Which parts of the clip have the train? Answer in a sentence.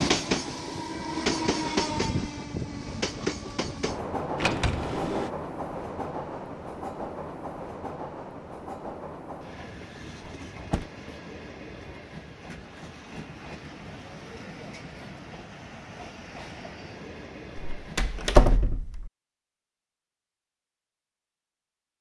The train can be heard from 0.0 to 18.6 s.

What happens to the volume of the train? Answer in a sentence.
The loudness of the train goes down.